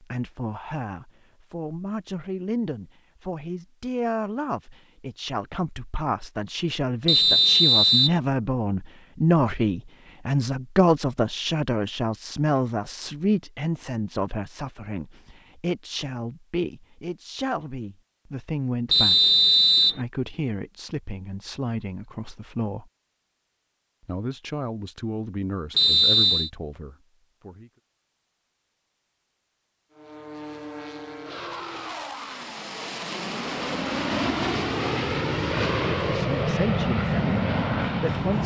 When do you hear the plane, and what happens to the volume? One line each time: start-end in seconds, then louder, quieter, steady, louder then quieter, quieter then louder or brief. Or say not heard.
29.9-38.4 louder.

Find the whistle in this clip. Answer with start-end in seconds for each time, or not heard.
7.0-8.2, 18.9-20.0, 25.8-26.5.